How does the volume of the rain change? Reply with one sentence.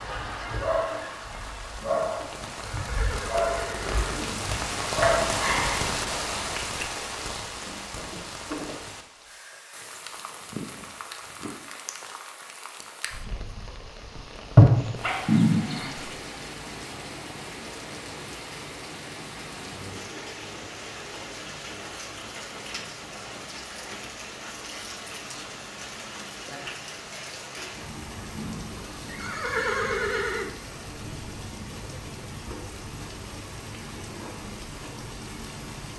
The loudness of the rain goes down.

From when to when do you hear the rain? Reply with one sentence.
You can hear the rain from 0.0 to 35.9 s.